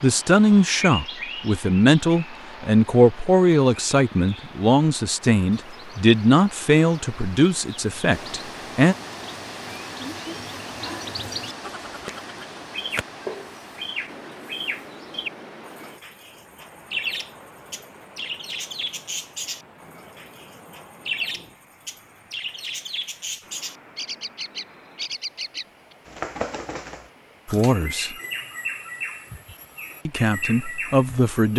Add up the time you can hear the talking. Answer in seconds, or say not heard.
11 s.